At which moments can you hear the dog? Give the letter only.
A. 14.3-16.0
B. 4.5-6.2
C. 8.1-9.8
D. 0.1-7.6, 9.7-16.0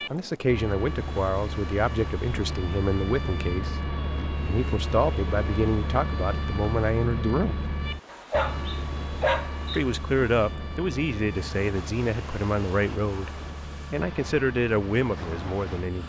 C.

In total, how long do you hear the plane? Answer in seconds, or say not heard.
16 s.